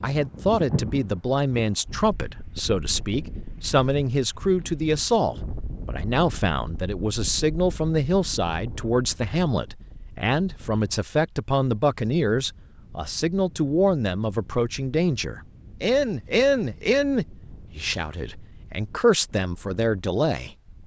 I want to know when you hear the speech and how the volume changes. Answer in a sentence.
You can hear the speech from 0.0 to 20.6 s, at a steady volume.